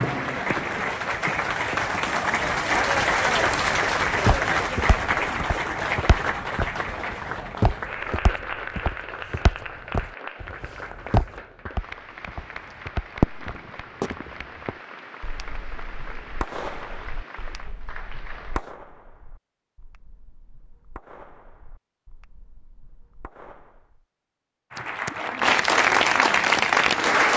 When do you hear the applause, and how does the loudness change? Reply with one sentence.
The applause can be heard from 0.0 to 18.6 s, getting quieter; and briefly from 24.7 to 27.3 s.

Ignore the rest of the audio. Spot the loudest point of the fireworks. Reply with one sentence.
The loudest moment of the fireworks is at 13 seconds.